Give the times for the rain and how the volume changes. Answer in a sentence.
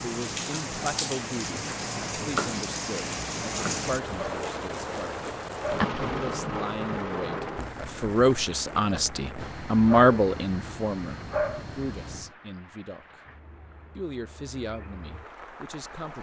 You can hear the rain from 0.0 to 16.1 s, getting quieter.